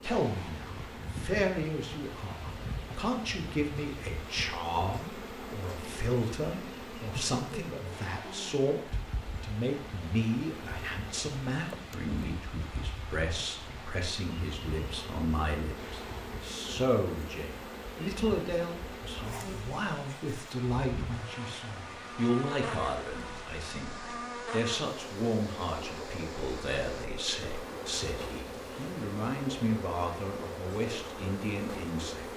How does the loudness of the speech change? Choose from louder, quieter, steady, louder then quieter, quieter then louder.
steady.